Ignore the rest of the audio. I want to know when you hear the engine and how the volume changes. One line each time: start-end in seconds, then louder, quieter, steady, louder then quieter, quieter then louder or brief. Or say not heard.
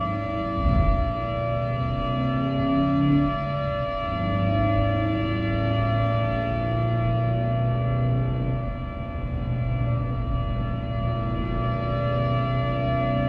0.0-13.2 steady.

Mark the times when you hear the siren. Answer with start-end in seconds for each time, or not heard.
0.0-13.2.